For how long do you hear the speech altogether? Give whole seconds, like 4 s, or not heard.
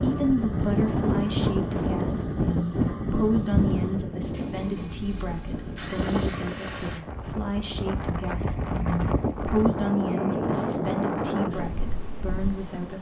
13 s.